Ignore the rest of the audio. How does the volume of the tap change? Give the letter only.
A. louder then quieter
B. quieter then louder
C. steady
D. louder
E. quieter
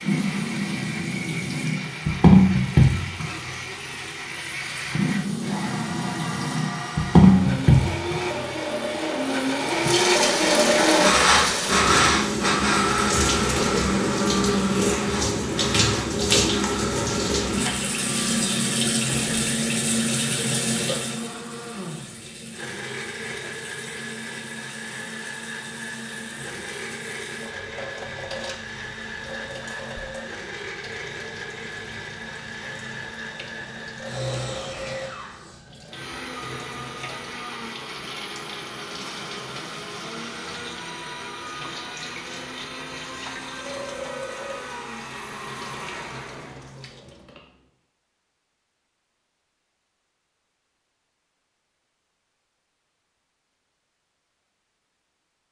E.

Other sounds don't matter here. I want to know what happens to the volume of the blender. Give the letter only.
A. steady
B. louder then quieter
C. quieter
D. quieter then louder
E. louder
B.